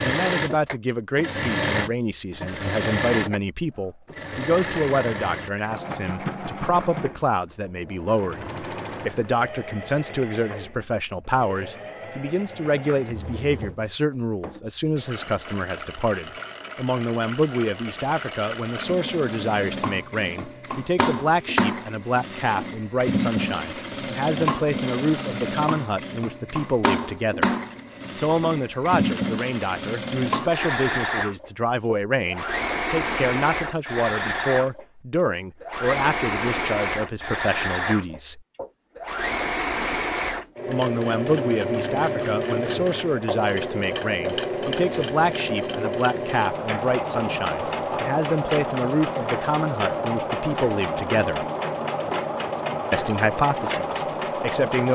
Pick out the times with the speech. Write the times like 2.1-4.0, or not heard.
0.0-27.4, 28.1-38.4, 40.6-51.5, 52.9-54.9.